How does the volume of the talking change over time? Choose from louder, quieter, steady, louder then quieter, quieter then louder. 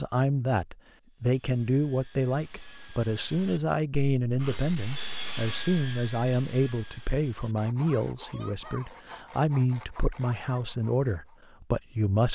steady.